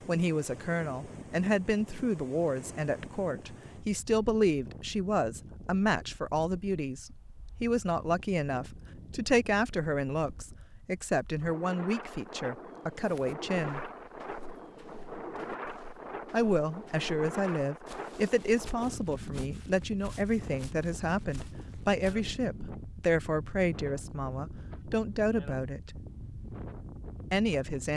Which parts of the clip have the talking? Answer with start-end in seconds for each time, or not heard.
0.1-13.8, 16.3-26.0, 27.3-27.9.